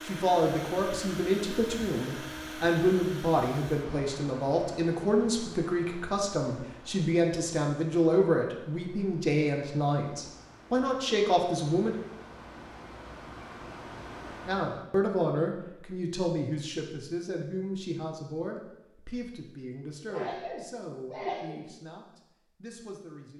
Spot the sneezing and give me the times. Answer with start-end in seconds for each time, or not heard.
20.1-21.6.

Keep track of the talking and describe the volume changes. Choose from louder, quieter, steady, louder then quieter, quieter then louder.
quieter.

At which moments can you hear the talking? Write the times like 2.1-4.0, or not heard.
0.1-11.9, 14.4-23.3.